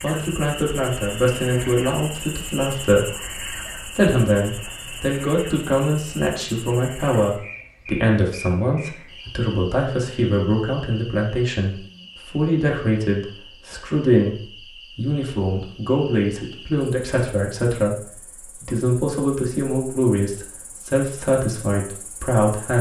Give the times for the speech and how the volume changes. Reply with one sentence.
You can hear the speech from 0.0 to 22.7 s, at a steady volume.